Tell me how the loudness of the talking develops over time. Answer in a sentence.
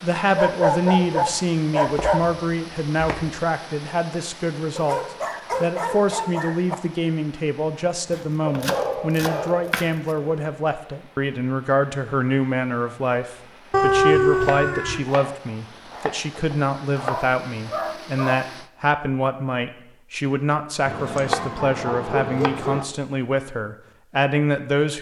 The loudness of the talking stays about the same.